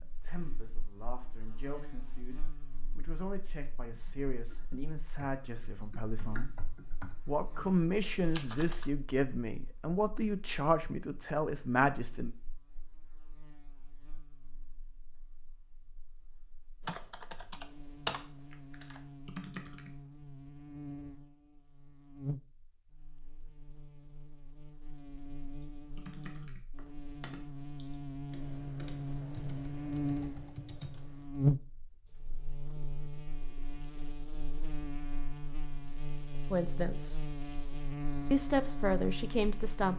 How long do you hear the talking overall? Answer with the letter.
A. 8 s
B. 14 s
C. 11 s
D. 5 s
B.